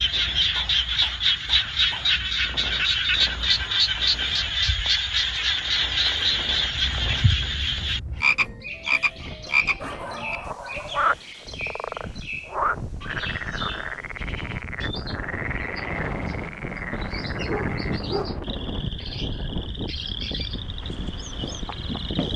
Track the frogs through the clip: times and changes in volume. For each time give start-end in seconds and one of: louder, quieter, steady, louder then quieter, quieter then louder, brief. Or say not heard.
0.0-22.3 quieter.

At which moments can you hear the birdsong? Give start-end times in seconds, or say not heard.
6.5-22.3.